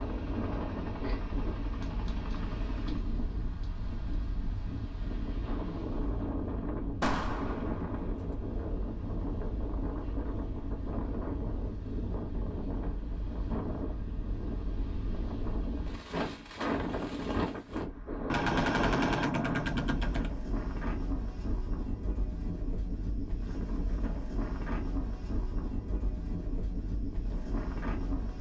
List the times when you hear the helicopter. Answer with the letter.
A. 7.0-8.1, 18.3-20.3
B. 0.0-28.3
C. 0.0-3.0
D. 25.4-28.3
C.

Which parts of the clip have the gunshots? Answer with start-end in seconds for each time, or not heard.
7.0-8.1, 18.3-20.3.